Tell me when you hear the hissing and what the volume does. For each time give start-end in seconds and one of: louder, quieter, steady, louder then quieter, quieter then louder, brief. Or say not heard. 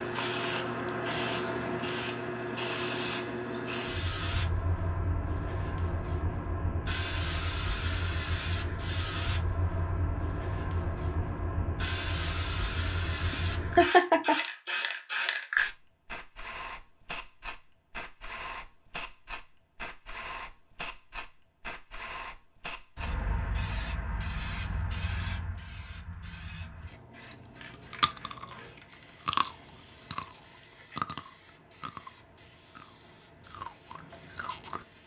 0.0-35.0 quieter.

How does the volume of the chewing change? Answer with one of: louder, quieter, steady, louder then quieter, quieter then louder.
quieter.